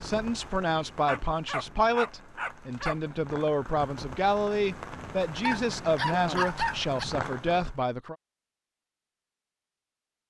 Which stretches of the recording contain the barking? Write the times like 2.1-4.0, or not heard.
1.1-3.0, 5.4-7.0.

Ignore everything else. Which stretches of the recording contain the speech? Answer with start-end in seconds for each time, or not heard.
0.0-8.2.